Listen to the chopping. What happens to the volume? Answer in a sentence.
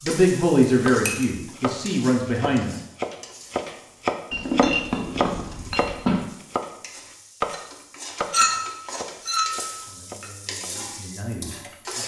The volume of the chopping goes up, then down.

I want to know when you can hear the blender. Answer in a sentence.
You can't hear the blender here.